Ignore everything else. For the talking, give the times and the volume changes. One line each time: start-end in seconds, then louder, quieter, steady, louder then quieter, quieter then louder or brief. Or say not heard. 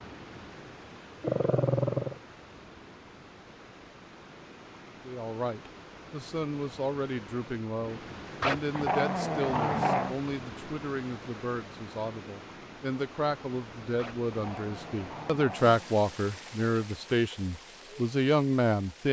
5.0-19.0 louder.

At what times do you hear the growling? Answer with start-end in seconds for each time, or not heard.
1.2-2.1, 8.4-10.2, 13.9-15.9.